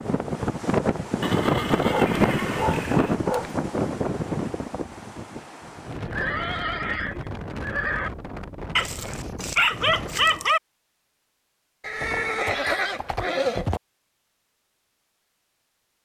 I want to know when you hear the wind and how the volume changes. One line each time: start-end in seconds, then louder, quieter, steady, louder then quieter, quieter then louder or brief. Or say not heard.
0.0-10.5 quieter.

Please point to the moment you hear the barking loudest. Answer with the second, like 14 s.
10 s.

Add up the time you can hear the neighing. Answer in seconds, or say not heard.
6 s.